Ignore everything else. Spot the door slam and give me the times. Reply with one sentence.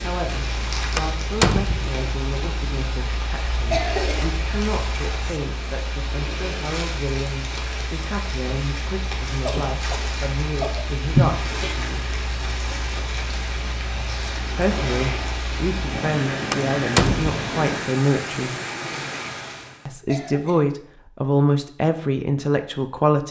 You can hear the door slam from 0.9 to 1.9 s and from 16.5 to 17.4 s.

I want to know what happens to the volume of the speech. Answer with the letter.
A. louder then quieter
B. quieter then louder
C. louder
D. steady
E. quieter
C.